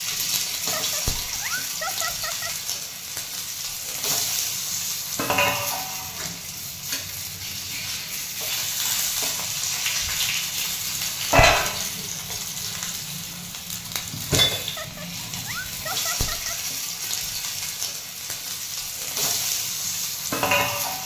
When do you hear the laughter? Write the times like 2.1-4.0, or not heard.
0.6-2.5, 14.7-16.6.